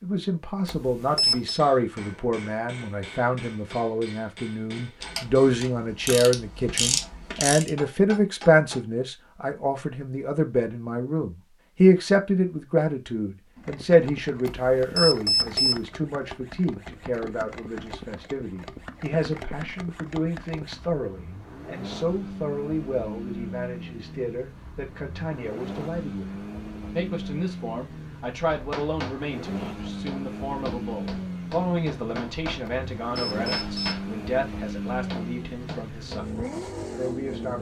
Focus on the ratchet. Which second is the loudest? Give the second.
7 s.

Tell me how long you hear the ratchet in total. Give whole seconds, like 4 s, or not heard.
3 s.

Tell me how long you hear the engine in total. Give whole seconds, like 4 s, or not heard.
24 s.